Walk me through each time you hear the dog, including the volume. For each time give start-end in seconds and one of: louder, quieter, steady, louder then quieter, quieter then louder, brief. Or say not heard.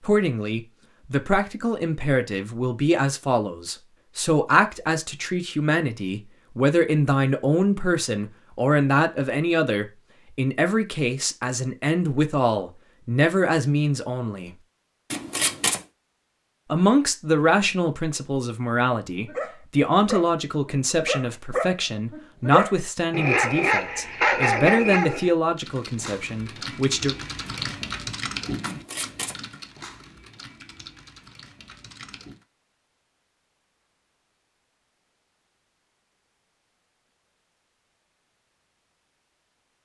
19.2-25.3 louder.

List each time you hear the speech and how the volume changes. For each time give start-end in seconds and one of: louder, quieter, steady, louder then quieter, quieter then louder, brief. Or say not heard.
0.0-14.6 steady
16.7-27.1 steady.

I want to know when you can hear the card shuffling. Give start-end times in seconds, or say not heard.
15.1-15.8, 28.6-29.4.